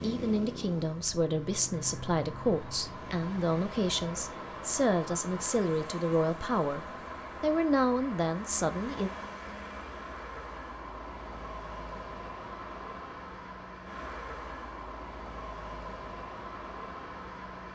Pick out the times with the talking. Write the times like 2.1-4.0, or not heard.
0.0-9.1.